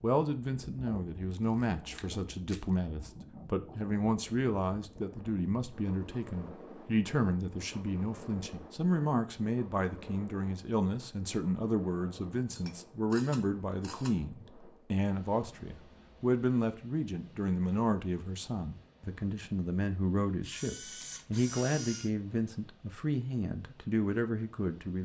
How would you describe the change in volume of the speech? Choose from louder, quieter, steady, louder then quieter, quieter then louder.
steady.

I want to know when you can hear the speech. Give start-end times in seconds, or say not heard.
0.0-25.0.